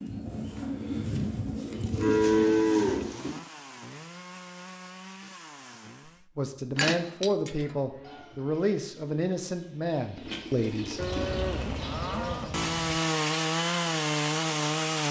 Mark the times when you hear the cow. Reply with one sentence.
The cow can be heard from 1.9 to 3.4 s, from 6.8 to 8.2 s and from 10.9 to 13.0 s.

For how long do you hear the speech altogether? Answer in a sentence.
You can hear the speech for 5 seconds altogether.